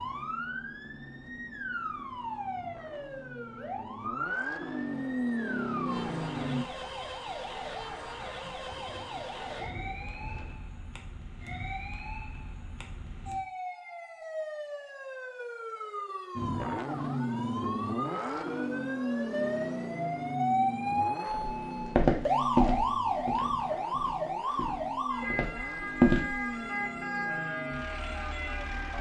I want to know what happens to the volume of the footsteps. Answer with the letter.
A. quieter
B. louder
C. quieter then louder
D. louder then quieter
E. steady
C.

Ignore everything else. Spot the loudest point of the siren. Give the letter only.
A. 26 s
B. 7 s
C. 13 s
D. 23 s
D.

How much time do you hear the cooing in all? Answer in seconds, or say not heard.
2 s.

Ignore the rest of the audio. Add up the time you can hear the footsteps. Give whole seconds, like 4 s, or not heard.
5 s.